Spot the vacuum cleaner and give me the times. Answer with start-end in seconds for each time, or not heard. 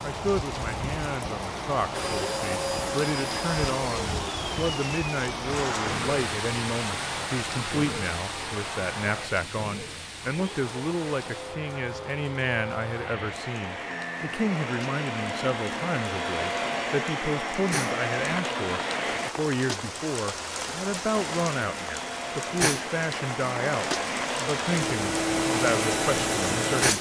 1.9-19.3, 21.1-26.9.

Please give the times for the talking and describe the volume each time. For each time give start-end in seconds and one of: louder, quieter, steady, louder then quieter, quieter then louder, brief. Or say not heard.
0.0-26.9 steady.